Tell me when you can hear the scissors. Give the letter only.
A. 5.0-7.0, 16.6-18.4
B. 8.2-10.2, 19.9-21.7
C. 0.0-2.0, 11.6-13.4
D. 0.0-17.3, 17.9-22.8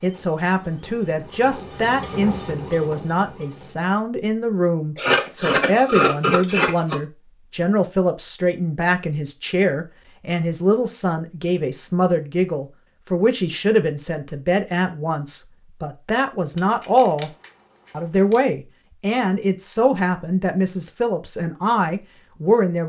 A.